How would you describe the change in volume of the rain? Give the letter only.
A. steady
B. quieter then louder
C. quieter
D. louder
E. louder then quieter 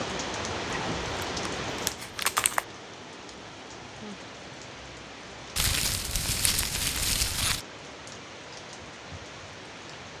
C.